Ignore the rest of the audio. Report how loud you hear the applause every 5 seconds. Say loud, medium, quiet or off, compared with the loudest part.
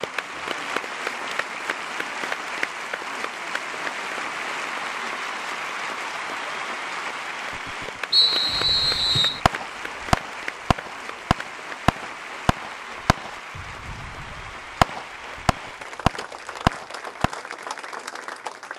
loud, loud, medium, medium.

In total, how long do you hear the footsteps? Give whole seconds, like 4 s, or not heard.
not heard.